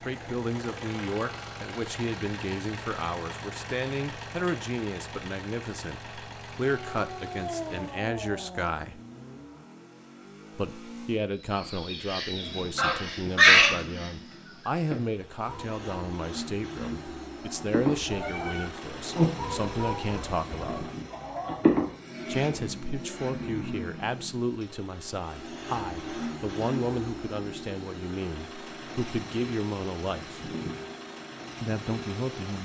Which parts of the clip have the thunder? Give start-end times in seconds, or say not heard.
not heard.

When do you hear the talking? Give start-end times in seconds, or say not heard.
0.1-9.0, 10.6-20.9, 22.2-30.4, 31.6-32.5.